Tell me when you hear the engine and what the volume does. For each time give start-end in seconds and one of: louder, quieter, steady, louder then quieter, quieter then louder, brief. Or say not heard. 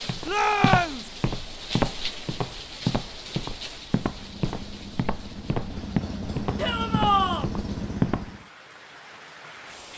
4.0-8.5 louder.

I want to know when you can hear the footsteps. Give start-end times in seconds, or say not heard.
0.0-8.3.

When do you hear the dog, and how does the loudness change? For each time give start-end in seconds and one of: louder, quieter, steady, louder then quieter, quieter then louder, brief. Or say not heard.
not heard.